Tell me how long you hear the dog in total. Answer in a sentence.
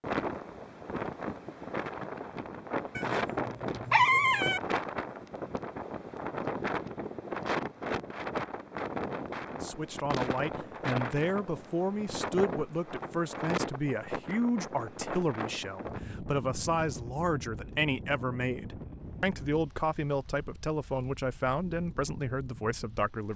You can hear the dog for 2 seconds altogether.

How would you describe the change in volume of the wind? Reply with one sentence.
The volume of the wind goes down.